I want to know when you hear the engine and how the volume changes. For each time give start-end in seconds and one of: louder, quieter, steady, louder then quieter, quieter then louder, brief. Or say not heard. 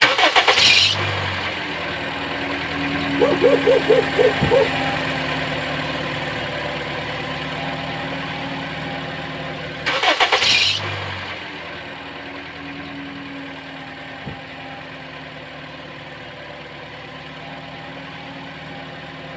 0.0-19.3 quieter.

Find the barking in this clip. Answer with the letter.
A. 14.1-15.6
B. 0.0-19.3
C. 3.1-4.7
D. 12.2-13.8
C.